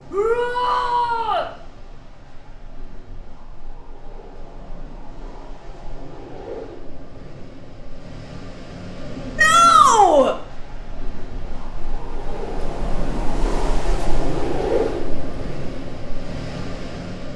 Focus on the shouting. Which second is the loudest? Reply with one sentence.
The loudest moment of the shouting is at 10 seconds.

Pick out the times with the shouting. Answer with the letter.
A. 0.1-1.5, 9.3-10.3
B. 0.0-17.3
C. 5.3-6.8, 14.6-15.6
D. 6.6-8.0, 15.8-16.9
A.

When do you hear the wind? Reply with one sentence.
The wind can be heard from 0.0 to 17.3 s.